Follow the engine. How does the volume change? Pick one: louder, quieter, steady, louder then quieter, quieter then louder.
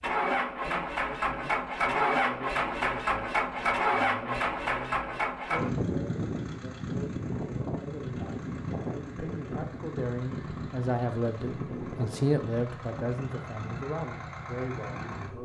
quieter.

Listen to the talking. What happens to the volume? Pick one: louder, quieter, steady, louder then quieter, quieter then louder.
louder then quieter.